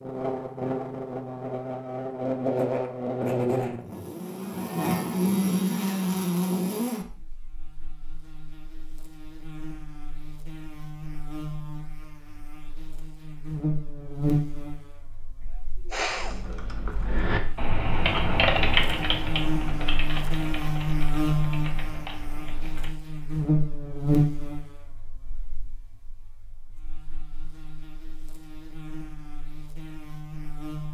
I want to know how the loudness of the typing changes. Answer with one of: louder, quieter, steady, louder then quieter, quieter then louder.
louder then quieter.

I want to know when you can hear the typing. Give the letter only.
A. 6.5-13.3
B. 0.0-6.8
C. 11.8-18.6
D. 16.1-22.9
D.